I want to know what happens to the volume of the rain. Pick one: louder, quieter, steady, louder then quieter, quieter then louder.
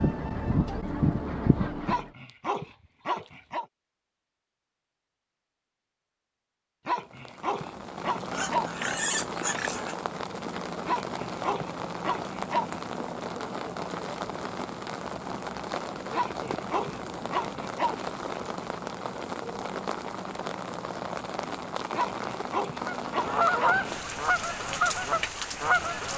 steady.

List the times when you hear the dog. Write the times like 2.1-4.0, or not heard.
1.9-3.6, 6.8-8.7, 10.8-12.7, 16.1-18.0, 21.9-23.8.